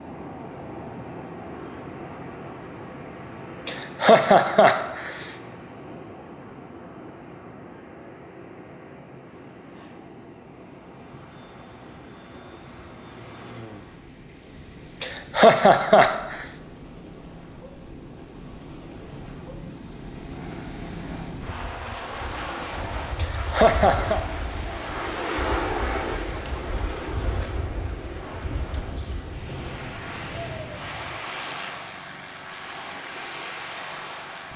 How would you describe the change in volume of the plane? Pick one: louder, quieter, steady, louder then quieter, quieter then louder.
louder then quieter.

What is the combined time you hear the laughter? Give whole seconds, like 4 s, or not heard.
4 s.